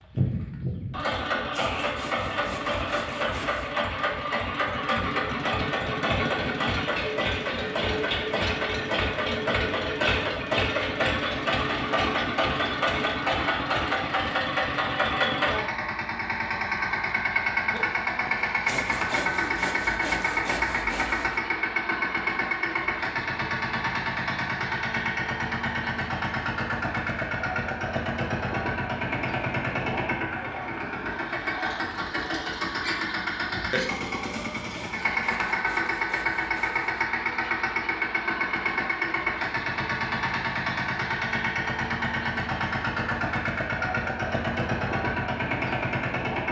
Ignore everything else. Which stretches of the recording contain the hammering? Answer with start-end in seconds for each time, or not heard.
not heard.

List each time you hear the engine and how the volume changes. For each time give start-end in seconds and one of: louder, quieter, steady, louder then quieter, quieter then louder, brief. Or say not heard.
0.0-46.4 steady.